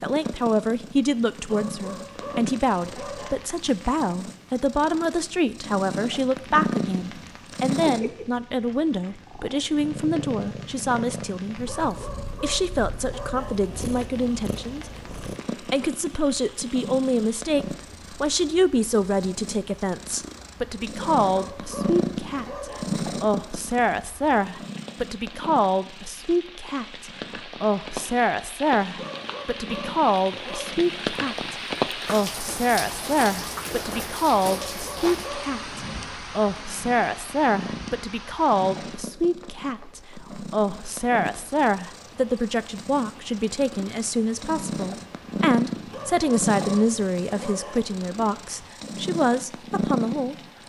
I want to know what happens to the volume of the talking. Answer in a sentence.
The loudness of the talking stays about the same.